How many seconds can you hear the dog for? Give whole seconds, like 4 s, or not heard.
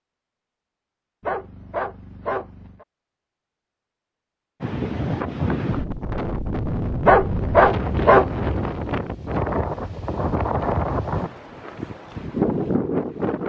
3 s.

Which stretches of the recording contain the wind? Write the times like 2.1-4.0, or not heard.
4.6-13.4.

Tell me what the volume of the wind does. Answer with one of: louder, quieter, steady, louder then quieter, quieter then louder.
steady.